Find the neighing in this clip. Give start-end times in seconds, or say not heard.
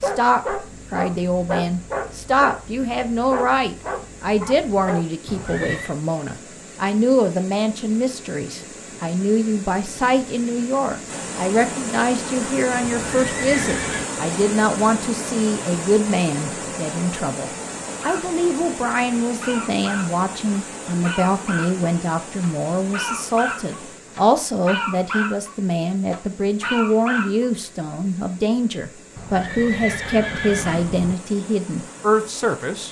5.2-6.0, 12.9-14.1, 29.1-31.1.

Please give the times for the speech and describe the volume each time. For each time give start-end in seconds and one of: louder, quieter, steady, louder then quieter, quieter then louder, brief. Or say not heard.
0.0-32.8 steady.